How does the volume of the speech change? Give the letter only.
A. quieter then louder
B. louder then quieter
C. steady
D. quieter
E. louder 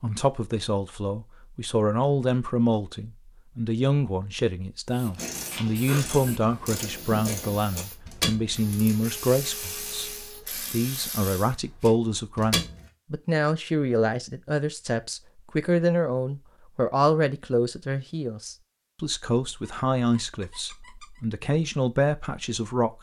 C.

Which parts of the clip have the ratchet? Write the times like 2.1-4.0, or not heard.
5.2-12.9.